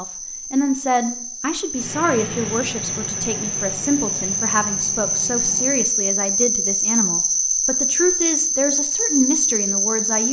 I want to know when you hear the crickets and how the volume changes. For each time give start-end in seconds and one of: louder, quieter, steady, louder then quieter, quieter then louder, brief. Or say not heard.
0.0-10.2 louder.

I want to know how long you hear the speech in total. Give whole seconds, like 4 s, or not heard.
10 s.